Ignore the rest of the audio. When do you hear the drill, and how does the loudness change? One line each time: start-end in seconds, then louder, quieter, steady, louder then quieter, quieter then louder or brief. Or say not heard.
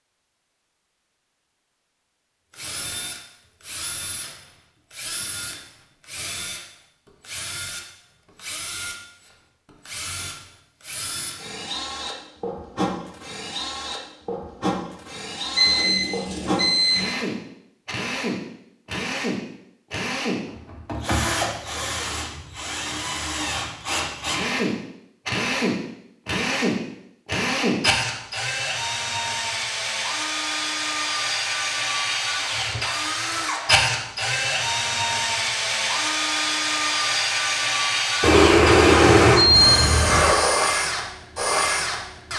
2.5-42.3 louder.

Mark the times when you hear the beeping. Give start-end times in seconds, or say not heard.
15.5-17.1, 38.2-40.2.